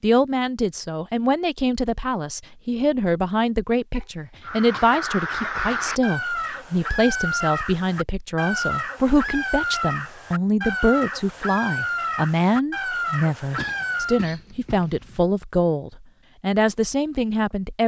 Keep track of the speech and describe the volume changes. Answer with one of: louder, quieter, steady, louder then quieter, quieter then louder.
steady.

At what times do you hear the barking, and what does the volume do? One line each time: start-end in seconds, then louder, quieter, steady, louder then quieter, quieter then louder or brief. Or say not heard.
not heard.